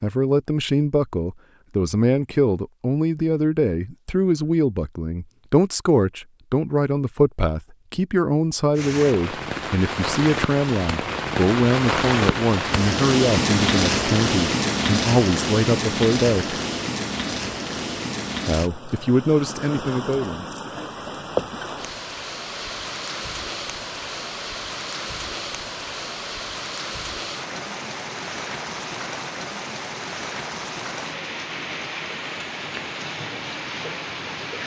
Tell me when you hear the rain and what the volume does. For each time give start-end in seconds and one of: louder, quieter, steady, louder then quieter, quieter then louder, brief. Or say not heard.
8.8-34.6 quieter.